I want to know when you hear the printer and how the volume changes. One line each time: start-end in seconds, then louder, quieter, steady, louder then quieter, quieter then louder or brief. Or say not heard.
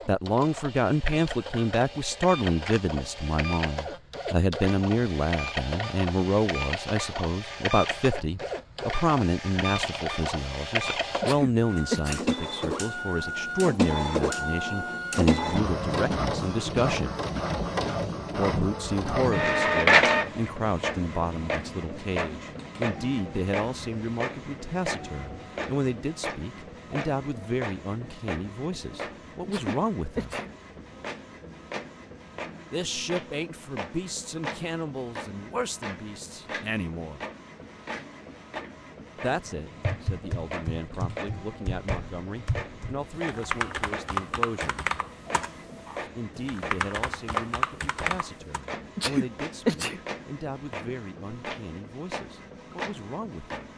0.0-53.7 louder then quieter.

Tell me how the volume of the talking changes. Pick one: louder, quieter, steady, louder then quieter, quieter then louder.
quieter.